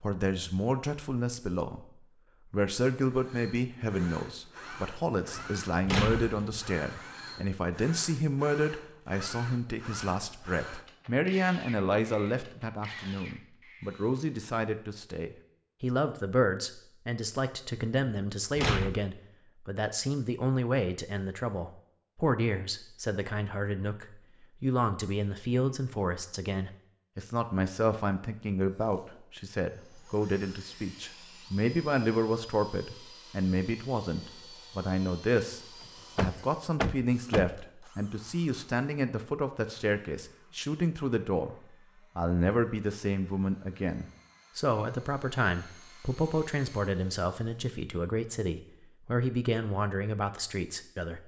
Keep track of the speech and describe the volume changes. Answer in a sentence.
The loudness of the speech stays about the same.